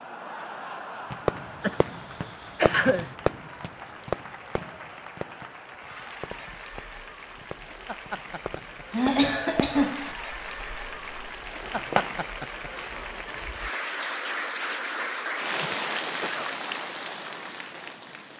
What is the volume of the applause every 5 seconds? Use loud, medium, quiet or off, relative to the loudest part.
medium, medium, loud, loud.